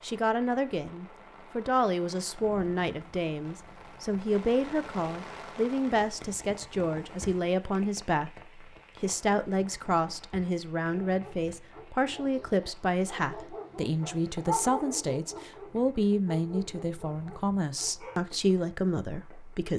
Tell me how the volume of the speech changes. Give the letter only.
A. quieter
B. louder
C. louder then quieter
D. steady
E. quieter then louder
D.